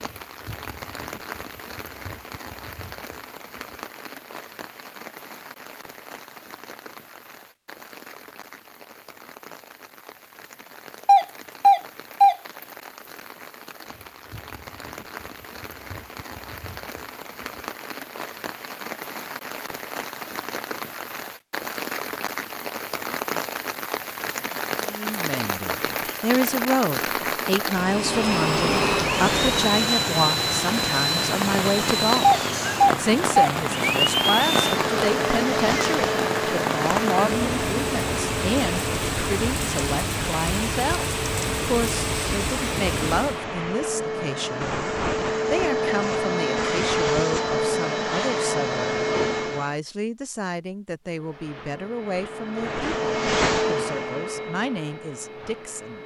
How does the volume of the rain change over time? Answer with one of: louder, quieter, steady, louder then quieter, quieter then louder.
louder.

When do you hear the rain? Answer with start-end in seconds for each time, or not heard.
0.0-43.4.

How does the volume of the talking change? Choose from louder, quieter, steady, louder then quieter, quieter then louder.
quieter.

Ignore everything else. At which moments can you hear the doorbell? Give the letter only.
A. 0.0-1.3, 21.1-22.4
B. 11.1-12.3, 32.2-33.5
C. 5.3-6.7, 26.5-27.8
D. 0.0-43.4
B.